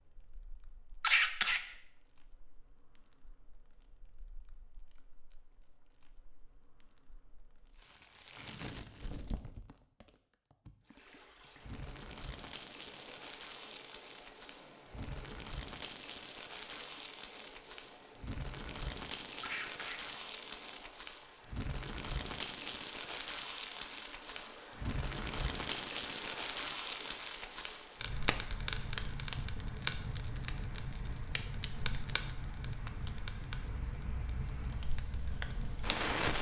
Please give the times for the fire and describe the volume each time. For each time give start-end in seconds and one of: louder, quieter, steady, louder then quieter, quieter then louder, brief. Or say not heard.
0.0-36.3 louder.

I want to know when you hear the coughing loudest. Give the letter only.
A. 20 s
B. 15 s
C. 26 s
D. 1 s
D.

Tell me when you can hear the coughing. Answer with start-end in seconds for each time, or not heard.
1.0-1.6, 19.4-20.1.